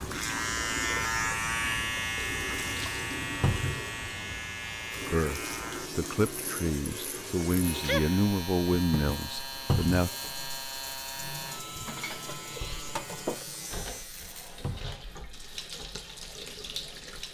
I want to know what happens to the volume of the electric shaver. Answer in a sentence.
The loudness of the electric shaver goes down.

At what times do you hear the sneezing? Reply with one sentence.
You can hear the sneezing from 7.4 to 8.2 s.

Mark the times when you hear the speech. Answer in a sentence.
The speech can be heard from 5.1 to 10.1 s.